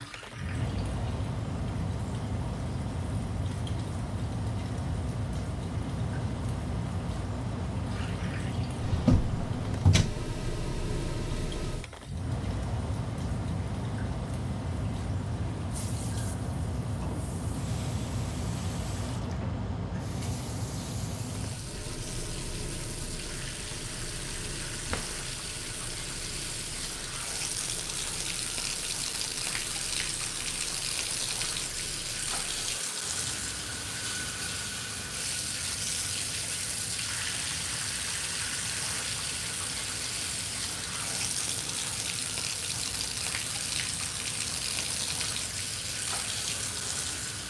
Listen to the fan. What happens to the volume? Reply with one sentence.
The loudness of the fan goes down.